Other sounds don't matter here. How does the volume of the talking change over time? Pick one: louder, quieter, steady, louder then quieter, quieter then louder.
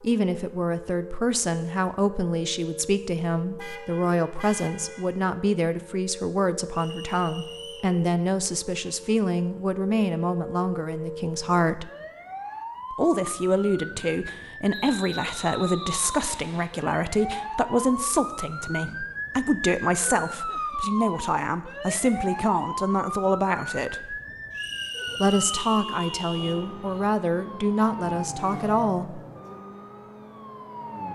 steady.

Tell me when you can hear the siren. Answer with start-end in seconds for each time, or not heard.
0.0-31.0.